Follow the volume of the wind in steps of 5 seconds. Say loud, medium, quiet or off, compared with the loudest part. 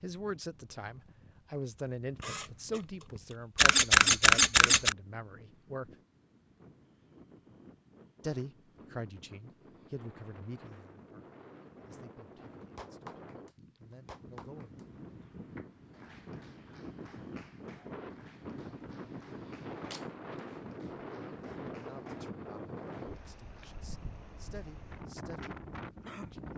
quiet, quiet, medium, loud, loud, loud.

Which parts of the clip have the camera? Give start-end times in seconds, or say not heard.
2.2-2.8, 3.5-5.0, 18.9-20.4.